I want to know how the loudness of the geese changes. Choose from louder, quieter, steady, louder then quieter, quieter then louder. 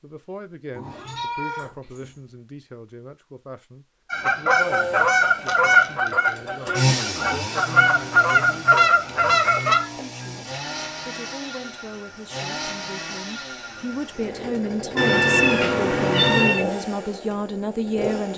quieter then louder.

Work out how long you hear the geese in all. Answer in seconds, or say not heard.
6 s.